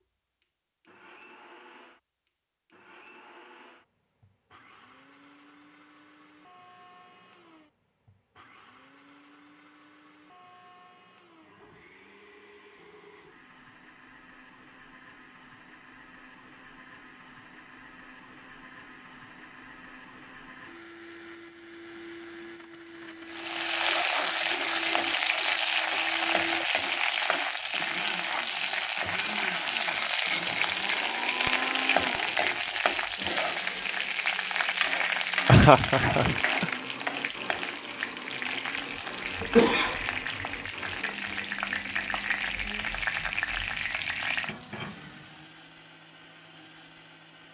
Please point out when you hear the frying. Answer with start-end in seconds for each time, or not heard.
23.3-45.5.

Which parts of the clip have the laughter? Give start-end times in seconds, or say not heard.
35.5-36.7.